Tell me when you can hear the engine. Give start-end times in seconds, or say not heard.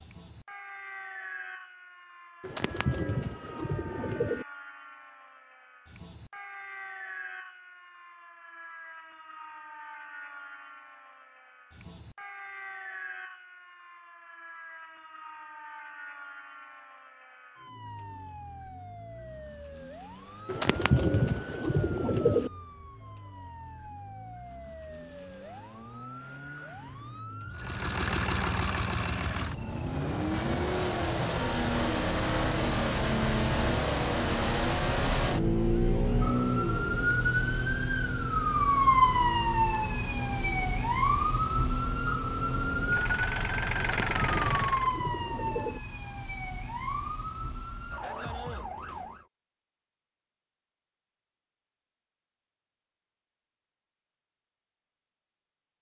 27.6-45.0.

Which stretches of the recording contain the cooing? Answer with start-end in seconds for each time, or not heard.
2.4-4.5, 20.4-22.5, 43.8-45.8.